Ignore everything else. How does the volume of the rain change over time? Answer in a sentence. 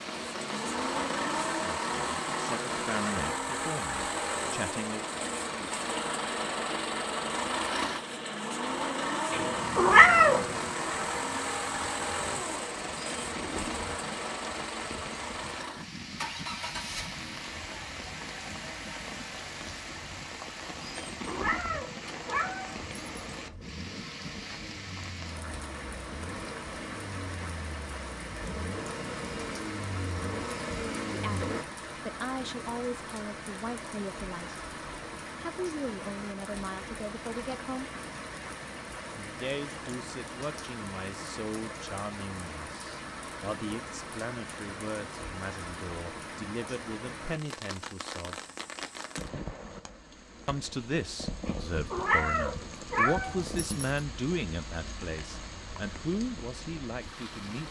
The volume of the rain stays about the same.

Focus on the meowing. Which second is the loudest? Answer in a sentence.
The volume of the meowing peaks at 10 seconds.